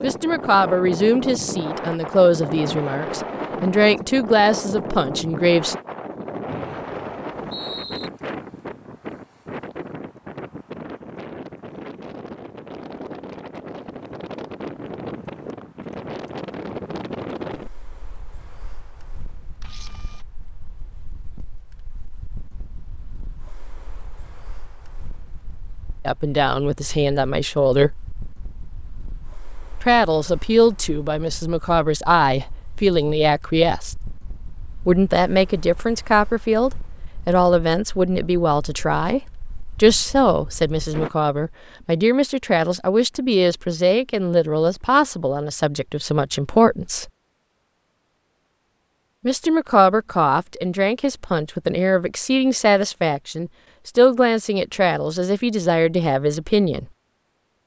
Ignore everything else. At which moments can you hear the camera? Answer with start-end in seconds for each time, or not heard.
19.6-20.2.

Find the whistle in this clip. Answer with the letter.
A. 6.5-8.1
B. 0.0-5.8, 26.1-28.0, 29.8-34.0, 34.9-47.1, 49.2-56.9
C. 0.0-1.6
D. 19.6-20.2
A.